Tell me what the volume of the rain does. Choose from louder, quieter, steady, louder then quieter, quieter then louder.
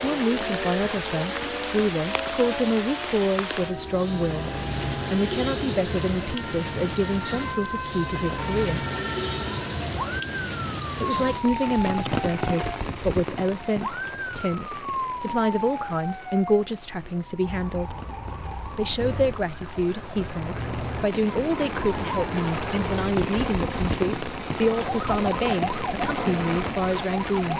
quieter then louder.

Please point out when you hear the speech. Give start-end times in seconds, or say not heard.
0.0-4.5, 5.1-8.8, 10.9-17.9, 18.8-27.5.